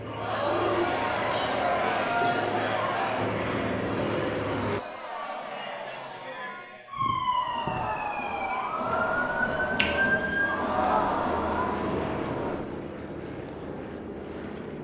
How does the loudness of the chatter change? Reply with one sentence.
The volume of the chatter goes down, then up.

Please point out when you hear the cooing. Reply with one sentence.
You can hear the cooing from 0.5 to 2.6 s.